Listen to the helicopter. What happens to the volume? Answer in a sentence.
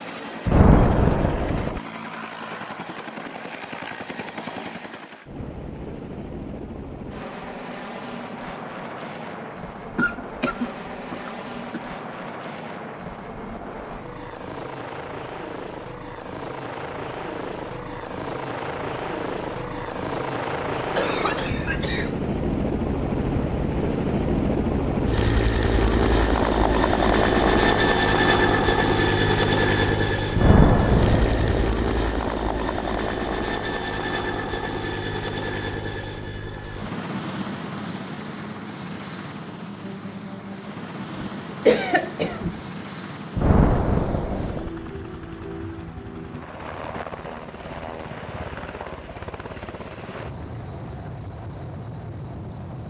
The volume of the helicopter goes up, then down.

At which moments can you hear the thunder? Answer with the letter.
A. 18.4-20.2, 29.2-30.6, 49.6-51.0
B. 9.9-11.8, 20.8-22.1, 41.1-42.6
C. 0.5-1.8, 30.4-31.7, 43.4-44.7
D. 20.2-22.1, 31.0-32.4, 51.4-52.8
C.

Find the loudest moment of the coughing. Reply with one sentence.
The volume of the coughing peaks at 42 seconds.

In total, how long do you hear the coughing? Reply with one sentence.
You can hear the coughing for 5 seconds altogether.